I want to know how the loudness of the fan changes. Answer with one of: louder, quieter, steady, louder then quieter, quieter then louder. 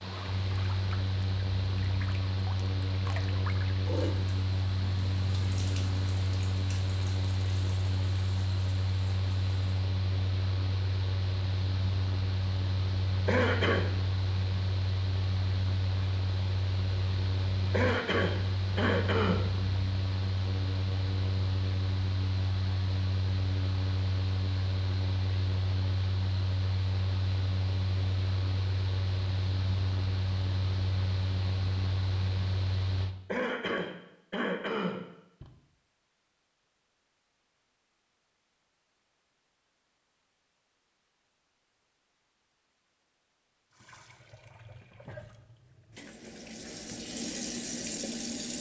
steady.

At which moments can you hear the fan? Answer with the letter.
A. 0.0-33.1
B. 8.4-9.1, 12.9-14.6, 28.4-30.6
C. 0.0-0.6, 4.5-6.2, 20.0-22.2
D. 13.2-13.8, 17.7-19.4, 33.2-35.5
A.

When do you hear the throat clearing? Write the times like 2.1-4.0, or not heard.
13.2-13.8, 17.7-19.4, 33.2-35.5.